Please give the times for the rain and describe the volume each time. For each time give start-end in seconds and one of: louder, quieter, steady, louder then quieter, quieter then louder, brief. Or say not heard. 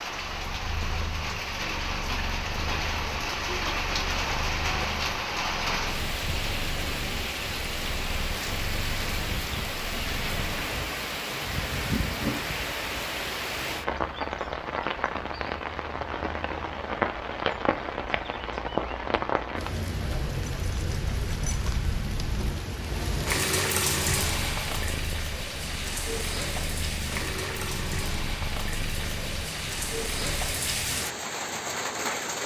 0.0-32.4 steady.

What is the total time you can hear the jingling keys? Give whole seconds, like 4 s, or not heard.
2 s.